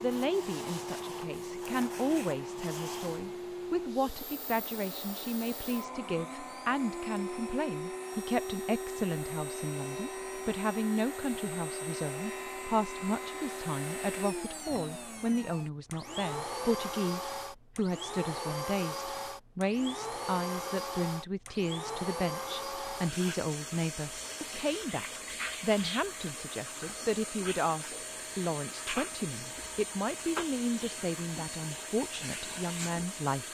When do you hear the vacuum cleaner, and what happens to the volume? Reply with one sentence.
The vacuum cleaner can be heard from 0.0 to 33.5 s, at a steady volume.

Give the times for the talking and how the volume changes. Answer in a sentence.
The talking can be heard from 0.0 to 33.5 s, at a steady volume.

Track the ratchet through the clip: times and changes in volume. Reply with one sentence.
You can't hear the ratchet here.